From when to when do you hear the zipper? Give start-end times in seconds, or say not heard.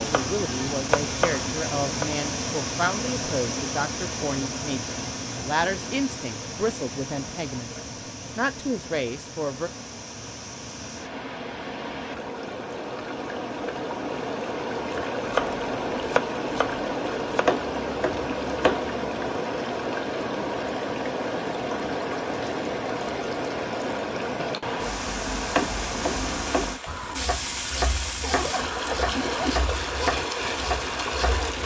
28.2-29.6.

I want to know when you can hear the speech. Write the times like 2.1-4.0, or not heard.
0.1-9.7.